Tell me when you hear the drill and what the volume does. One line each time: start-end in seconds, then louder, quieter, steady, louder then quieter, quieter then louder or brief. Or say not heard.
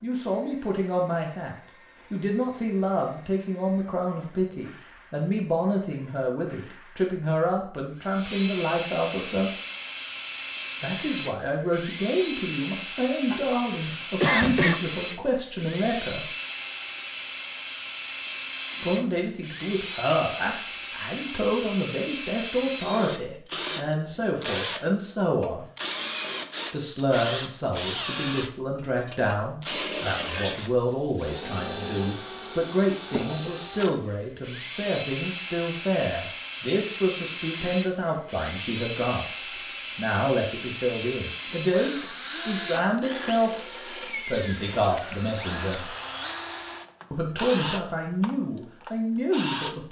0.0-49.8 louder.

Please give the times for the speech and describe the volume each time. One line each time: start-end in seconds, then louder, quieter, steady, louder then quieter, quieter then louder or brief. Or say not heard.
0.0-9.5 steady
10.8-16.2 steady
18.8-25.6 steady
26.7-46.0 steady
47.1-49.8 brief.